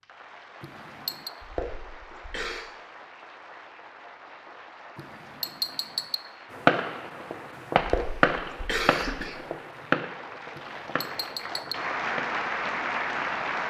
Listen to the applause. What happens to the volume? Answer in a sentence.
The volume of the applause goes up.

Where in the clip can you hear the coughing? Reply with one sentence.
You can hear the coughing from 1.4 to 2.6 s and from 7.8 to 9.3 s.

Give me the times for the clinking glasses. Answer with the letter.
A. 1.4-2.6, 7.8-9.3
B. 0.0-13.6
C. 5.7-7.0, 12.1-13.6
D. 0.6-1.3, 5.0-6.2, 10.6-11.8
D.